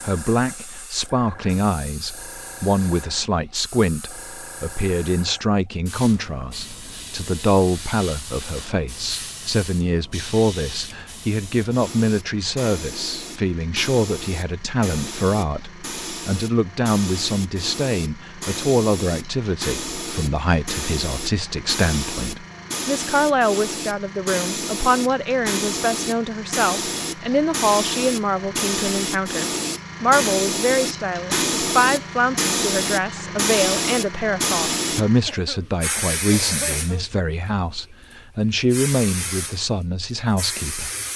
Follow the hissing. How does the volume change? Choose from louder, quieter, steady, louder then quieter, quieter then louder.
louder.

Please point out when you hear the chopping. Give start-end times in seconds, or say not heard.
not heard.